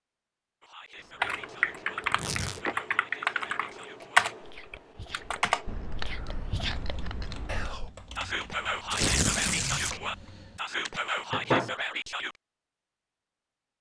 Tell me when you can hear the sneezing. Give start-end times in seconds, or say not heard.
not heard.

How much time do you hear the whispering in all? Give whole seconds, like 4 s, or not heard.
12 s.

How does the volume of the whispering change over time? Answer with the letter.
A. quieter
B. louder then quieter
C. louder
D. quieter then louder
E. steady
C.